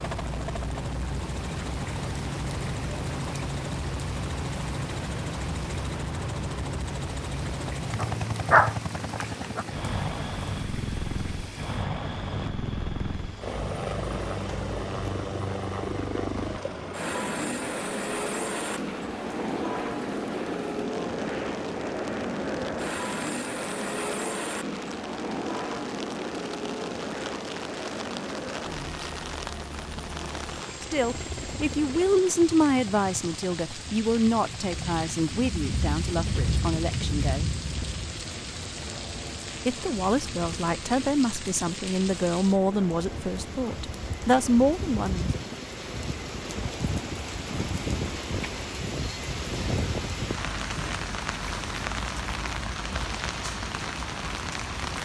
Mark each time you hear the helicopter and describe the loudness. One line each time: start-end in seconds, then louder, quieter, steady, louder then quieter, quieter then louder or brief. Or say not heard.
0.0-55.0 quieter.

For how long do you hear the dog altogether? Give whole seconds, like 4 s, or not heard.
2 s.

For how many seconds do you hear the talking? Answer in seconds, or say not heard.
13 s.